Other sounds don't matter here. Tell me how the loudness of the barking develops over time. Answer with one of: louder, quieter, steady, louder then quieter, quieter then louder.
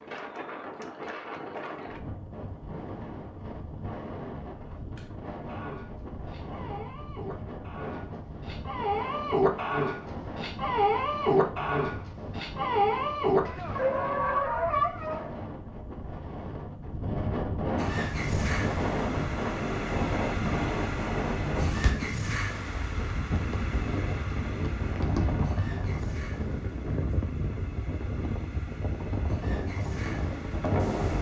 louder.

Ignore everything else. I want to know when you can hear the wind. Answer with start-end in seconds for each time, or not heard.
0.0-31.1.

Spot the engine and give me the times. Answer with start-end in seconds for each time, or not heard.
17.8-31.1.